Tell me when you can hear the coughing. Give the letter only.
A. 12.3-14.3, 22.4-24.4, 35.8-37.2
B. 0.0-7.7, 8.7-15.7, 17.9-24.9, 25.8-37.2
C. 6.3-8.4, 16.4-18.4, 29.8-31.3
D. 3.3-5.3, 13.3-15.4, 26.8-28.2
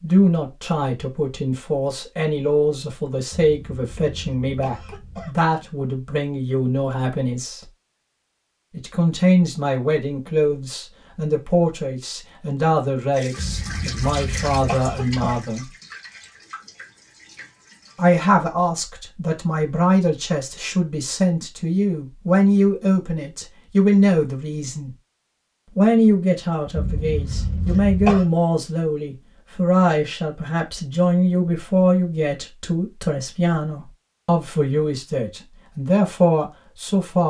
D.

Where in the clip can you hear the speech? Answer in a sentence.
You can hear the speech from 0.0 to 7.7 s, from 8.7 to 15.7 s, from 17.9 to 24.9 s and from 25.8 to 37.2 s.